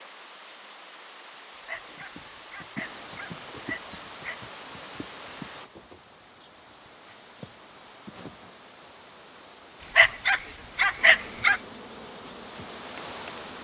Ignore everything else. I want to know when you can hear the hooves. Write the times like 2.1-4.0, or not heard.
1.9-8.6.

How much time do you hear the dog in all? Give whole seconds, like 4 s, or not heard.
5 s.